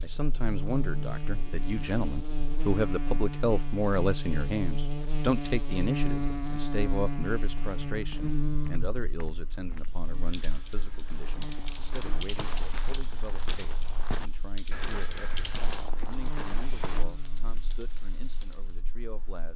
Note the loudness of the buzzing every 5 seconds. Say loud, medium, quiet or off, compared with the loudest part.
loud, loud, quiet, quiet.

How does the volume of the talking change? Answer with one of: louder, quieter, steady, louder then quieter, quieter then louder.
quieter.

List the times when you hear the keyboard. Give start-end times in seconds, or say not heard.
9.8-18.8.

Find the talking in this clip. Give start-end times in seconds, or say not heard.
0.0-19.5.